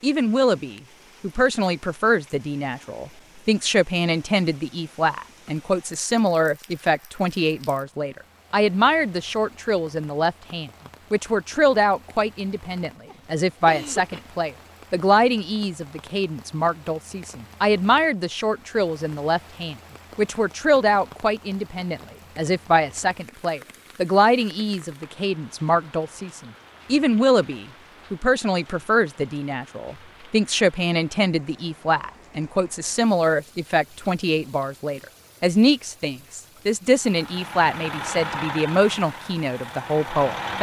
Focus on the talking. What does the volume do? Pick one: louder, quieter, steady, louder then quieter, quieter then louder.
steady.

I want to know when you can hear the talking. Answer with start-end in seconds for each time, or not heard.
0.0-40.5.